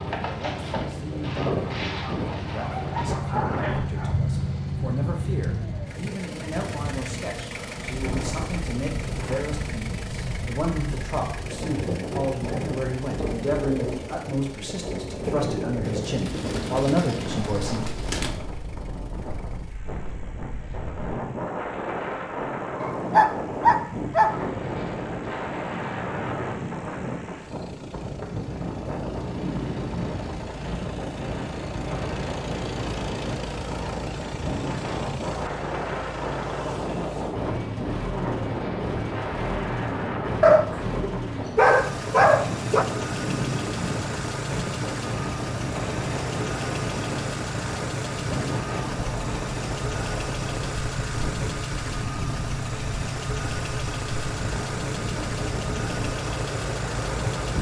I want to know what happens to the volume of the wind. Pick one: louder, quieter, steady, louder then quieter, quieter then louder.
steady.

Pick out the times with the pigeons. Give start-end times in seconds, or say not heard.
15.8-18.4.